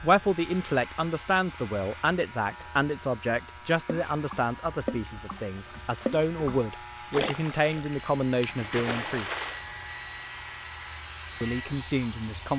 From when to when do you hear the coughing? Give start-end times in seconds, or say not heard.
not heard.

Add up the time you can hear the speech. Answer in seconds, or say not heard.
10 s.